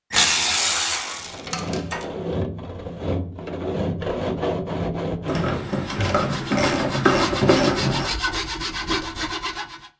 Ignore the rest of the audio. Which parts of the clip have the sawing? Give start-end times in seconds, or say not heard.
1.1-9.9.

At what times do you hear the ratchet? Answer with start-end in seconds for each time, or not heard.
0.1-2.0, 5.2-8.1.